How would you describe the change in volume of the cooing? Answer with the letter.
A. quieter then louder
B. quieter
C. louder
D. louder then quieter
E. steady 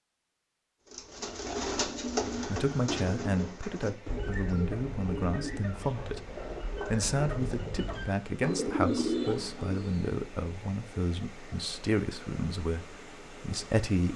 A.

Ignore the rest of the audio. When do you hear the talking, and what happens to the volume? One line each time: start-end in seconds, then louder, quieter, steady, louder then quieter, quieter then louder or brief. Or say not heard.
2.5-14.1 steady.